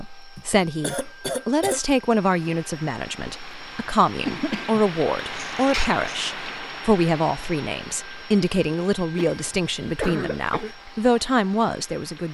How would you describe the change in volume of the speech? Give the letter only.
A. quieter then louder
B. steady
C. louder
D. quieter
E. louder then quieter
B.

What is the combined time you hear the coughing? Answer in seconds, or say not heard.
5 s.